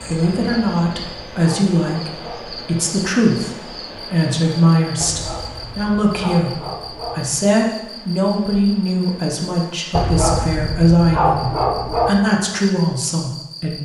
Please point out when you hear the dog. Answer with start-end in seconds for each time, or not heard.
0.3-2.6, 5.0-7.5, 9.9-12.2.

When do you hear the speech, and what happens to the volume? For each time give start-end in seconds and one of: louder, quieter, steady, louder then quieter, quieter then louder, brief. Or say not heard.
0.1-13.7 steady.